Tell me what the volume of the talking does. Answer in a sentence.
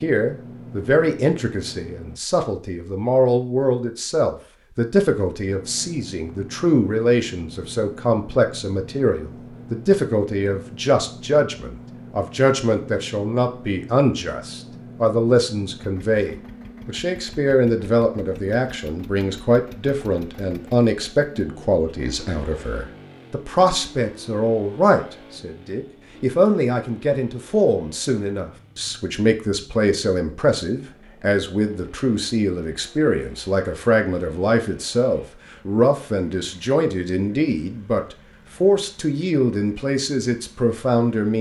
The loudness of the talking stays about the same.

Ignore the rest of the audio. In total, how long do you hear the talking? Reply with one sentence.
The talking can be heard for 41 seconds in total.